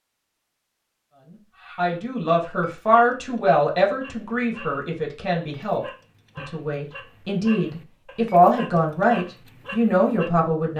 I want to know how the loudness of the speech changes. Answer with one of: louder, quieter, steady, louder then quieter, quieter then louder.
quieter then louder.